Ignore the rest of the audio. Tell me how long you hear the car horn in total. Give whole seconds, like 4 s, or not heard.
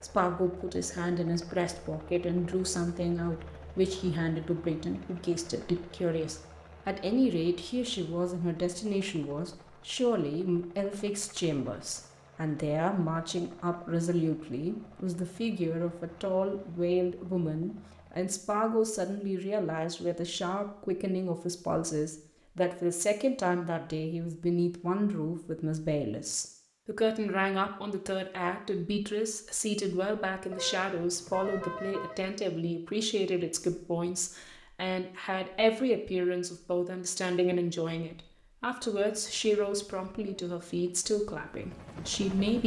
2 s.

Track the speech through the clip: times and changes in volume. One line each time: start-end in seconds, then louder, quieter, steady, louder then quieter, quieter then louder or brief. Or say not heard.
0.0-42.6 steady.